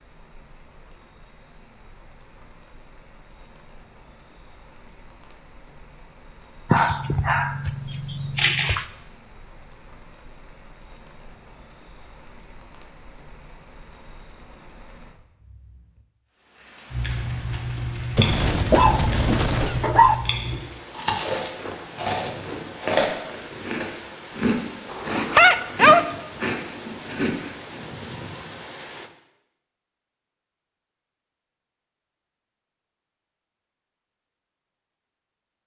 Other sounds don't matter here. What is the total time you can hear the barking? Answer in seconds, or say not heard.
5 s.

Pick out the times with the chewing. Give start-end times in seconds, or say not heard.
16.9-27.8.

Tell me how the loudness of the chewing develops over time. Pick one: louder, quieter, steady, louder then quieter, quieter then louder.
steady.